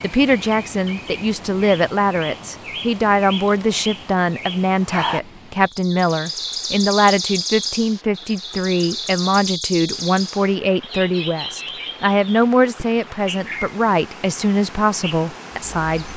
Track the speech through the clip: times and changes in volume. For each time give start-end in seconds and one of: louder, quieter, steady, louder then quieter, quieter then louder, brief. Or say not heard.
0.0-16.1 steady.